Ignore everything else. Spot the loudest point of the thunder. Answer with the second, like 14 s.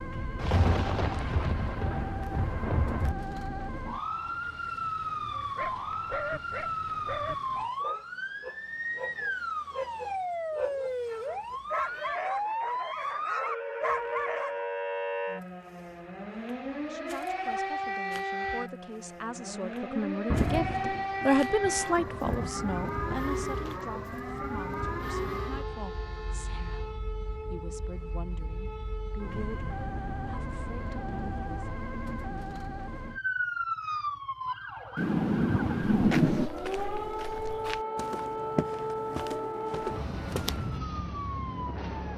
36 s.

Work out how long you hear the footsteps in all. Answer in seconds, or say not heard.
5 s.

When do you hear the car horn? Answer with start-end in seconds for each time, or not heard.
25.1-27.0.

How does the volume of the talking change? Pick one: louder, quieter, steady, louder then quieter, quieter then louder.
louder then quieter.